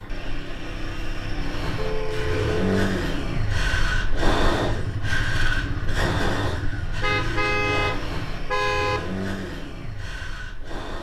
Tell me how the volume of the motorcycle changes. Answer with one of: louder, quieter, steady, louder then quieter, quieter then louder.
louder then quieter.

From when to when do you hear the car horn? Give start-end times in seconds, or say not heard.
1.8-2.6, 7.0-9.0.